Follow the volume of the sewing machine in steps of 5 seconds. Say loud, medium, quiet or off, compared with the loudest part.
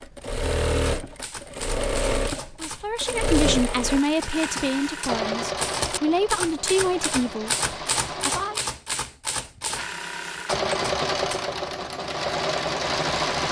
loud, medium, loud.